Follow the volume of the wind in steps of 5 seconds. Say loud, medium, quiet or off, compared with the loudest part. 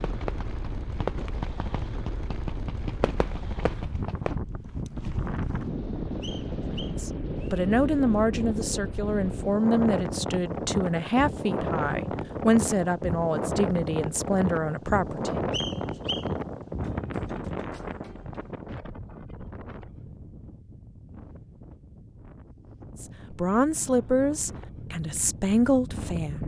medium, loud, loud, loud, quiet, medium.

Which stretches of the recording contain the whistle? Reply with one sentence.
The whistle can be heard from 6.2 to 7.7 s and from 15.5 to 16.3 s.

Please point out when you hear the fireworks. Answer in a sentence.
You can hear the fireworks from 0.0 to 4.4 s.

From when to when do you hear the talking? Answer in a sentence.
You can hear the talking from 6.7 to 15.4 s and from 23.0 to 26.4 s.